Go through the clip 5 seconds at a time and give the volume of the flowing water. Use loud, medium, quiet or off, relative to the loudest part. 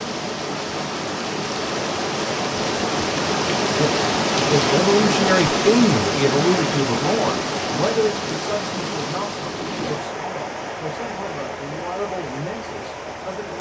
loud, loud, medium.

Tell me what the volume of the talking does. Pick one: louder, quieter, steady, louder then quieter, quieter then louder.
quieter.